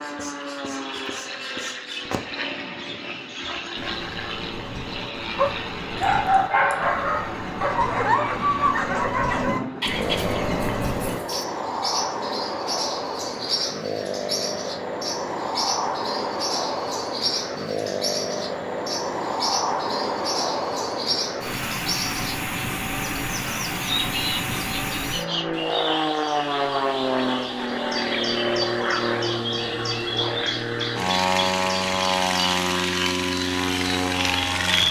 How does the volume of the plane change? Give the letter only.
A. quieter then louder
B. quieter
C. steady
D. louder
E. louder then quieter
D.